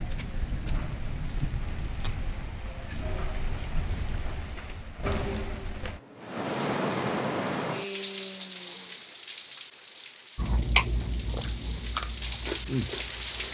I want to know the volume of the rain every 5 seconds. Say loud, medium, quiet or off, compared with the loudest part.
medium, loud, loud.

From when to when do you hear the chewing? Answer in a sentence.
You can hear the chewing from 10.3 to 13.5 s.